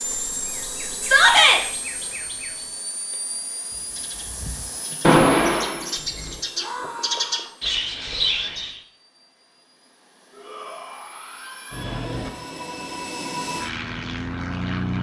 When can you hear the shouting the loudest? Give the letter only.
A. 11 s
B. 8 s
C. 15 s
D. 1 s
D.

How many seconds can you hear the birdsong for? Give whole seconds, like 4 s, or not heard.
9 s.